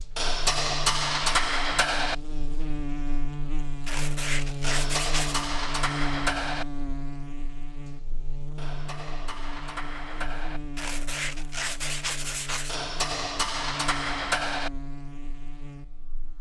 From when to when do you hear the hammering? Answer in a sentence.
You can hear the hammering from 0.1 to 2.1 s, from 4.6 to 6.7 s, from 8.6 to 10.6 s and from 12.7 to 14.7 s.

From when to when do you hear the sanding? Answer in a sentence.
You can hear the sanding from 3.9 to 5.5 s and from 10.8 to 12.8 s.